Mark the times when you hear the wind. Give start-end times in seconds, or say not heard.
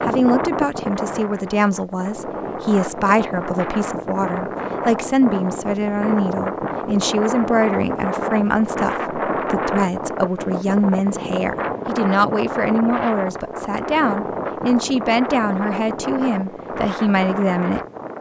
0.0-18.1.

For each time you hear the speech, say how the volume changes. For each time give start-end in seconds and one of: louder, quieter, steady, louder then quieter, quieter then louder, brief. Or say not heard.
0.0-17.8 steady.